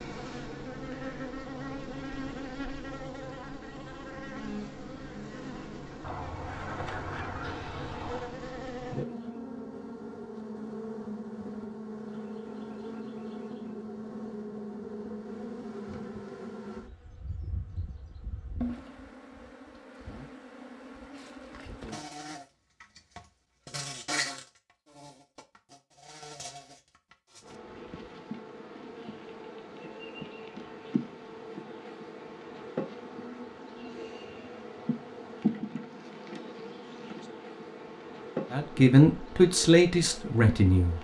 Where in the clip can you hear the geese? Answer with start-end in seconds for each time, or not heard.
6.0-8.3.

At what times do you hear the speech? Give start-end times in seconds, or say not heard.
38.5-40.9.